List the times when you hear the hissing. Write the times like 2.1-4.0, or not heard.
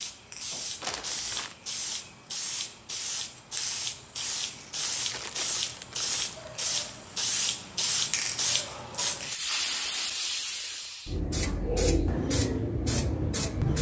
0.0-13.7.